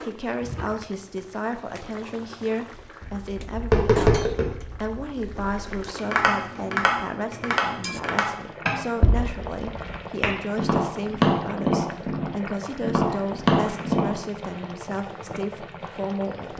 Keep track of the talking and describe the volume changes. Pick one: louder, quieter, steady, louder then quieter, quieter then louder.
steady.